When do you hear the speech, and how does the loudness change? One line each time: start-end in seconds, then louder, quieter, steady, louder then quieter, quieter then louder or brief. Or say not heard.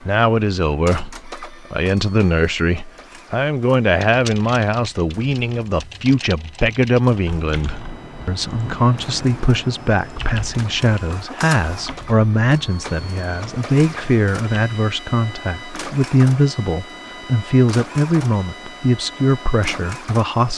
0.1-20.5 steady.